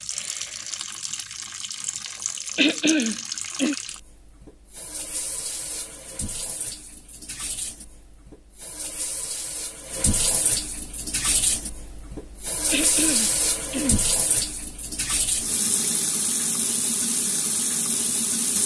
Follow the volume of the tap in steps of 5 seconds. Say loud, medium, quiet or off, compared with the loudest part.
medium, medium, loud, loud.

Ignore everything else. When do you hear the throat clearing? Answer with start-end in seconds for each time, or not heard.
2.5-3.8, 12.7-14.1.